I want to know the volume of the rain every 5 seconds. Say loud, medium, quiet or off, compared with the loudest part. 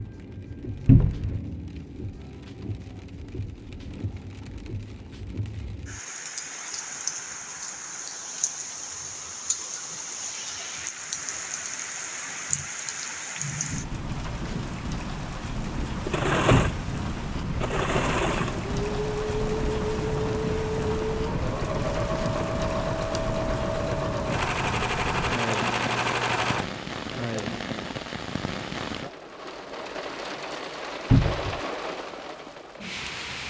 medium, loud, loud, loud, loud, loud, loud.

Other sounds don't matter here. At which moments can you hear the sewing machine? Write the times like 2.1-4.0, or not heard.
16.1-26.6.